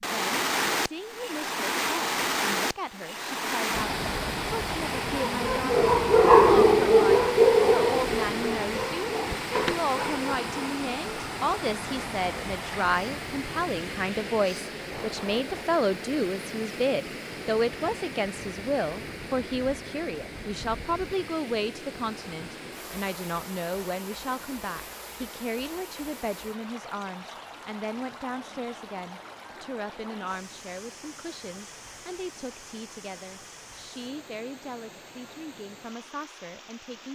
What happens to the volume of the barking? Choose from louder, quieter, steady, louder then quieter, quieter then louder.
quieter.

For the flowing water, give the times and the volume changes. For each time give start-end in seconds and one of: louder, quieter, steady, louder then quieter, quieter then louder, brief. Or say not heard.
0.0-37.1 quieter.